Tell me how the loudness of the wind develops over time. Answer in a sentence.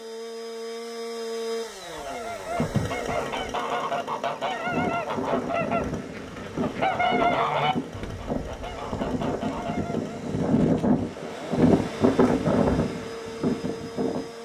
The loudness of the wind goes up.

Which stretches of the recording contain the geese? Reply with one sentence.
The geese can be heard from 1.6 to 10.2 s.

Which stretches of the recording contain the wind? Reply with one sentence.
The wind can be heard from 4.5 to 14.4 s.